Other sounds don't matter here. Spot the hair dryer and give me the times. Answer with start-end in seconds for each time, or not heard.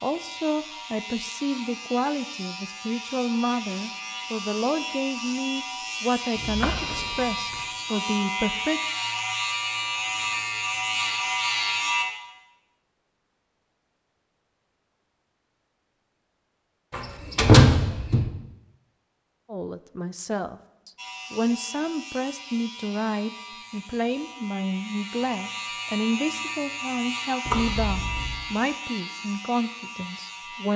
not heard.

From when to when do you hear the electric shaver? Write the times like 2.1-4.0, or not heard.
0.0-12.1, 20.9-30.7.